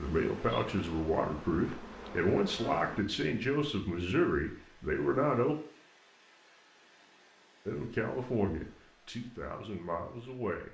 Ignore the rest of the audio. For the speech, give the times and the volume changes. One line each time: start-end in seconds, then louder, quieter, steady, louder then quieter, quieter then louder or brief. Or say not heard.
0.0-5.5 steady
7.7-10.6 brief.